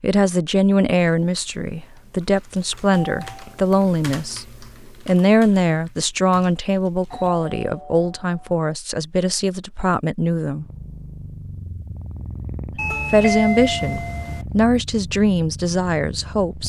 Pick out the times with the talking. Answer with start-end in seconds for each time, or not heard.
0.0-10.7, 12.7-16.6.